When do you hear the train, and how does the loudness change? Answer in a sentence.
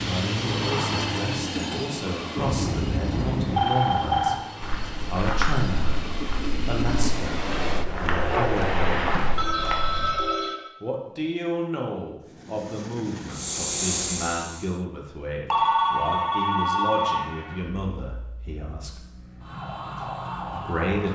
The train can be heard from 0.0 to 9.6 s, getting quieter then louder; and briefly from 12.2 to 14.8 s.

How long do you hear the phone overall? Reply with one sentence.
The phone can be heard for 5 seconds in total.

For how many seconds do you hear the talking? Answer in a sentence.
You can hear the talking for 17 seconds altogether.